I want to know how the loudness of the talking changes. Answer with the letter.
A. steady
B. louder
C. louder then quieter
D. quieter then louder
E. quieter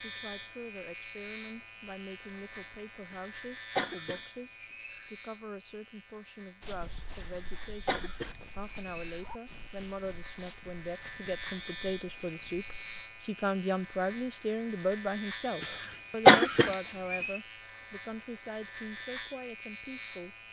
C.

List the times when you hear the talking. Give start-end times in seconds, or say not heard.
0.0-20.4.